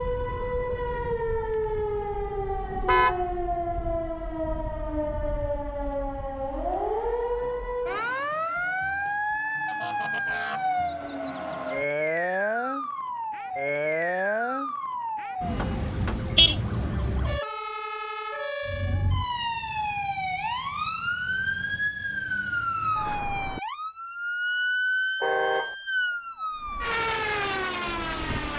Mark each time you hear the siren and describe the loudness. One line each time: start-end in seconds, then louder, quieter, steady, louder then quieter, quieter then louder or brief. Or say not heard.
0.0-28.5 steady.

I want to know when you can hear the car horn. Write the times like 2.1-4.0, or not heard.
2.7-3.2, 15.6-16.6, 25.2-25.8.